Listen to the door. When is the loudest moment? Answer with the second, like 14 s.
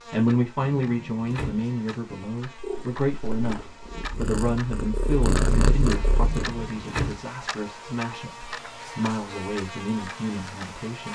7 s.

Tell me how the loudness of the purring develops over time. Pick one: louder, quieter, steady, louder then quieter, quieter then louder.
louder.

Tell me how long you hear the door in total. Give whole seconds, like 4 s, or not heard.
2 s.